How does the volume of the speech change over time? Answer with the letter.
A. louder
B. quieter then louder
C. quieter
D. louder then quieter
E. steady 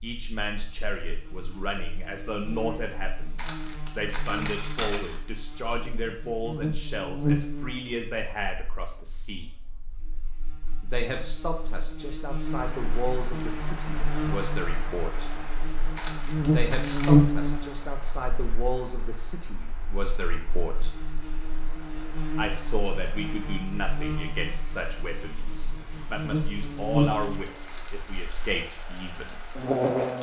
E.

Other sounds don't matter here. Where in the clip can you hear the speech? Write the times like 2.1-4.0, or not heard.
0.0-9.5, 10.8-15.3, 16.4-20.9, 22.4-29.4.